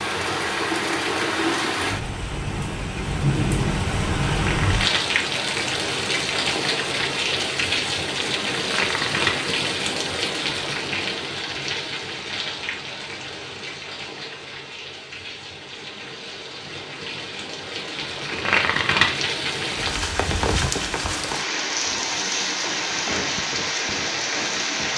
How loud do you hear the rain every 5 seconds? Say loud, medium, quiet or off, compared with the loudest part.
loud, loud, medium, medium, loud.